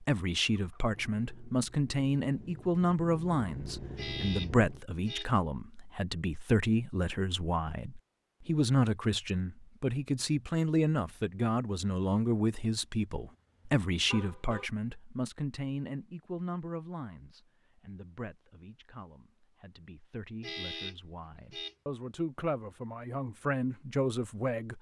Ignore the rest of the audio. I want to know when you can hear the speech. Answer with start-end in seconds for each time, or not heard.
0.0-24.7.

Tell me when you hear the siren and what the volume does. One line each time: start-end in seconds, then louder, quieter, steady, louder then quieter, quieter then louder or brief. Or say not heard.
not heard.